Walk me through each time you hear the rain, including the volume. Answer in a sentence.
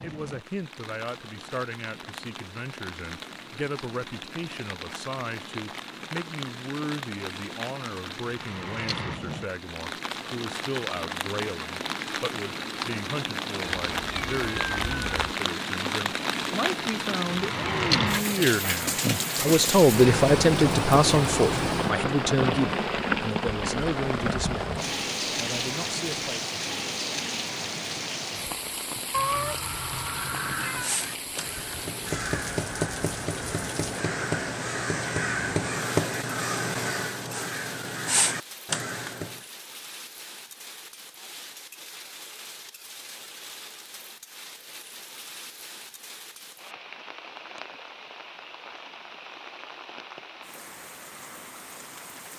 You can hear the rain from 0.0 to 52.3 s, getting louder then quieter.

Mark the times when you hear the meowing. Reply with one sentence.
The meowing can be heard from 13.9 to 15.2 s and from 29.1 to 30.9 s.